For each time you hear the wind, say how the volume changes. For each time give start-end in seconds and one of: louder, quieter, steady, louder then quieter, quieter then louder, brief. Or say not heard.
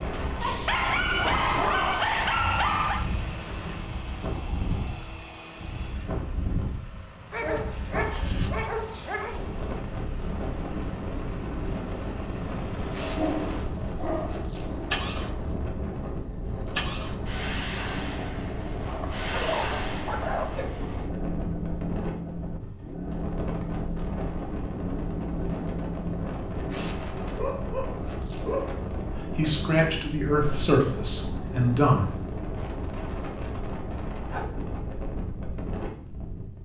0.0-36.6 steady.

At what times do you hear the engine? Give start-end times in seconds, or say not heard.
0.0-26.9.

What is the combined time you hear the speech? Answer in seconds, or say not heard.
3 s.